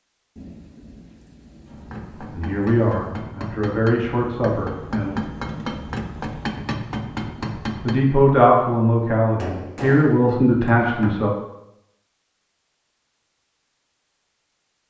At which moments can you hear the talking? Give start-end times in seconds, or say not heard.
2.1-5.2, 7.8-11.3.